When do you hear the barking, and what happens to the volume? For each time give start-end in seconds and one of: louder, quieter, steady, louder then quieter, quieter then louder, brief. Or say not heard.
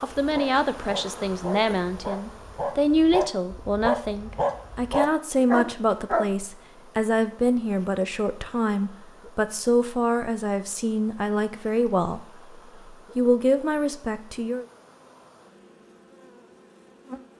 0.1-6.2 louder.